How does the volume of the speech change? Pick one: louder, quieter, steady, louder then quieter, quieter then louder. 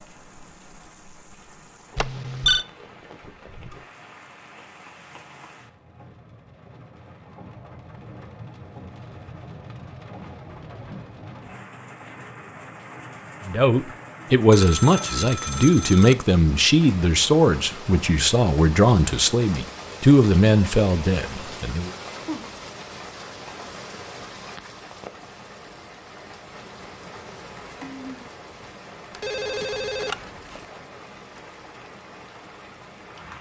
steady.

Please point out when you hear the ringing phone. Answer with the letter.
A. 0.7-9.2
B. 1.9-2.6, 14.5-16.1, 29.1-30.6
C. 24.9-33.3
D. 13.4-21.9
B.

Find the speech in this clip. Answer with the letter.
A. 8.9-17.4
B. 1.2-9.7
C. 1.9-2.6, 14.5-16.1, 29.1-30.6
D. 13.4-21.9
D.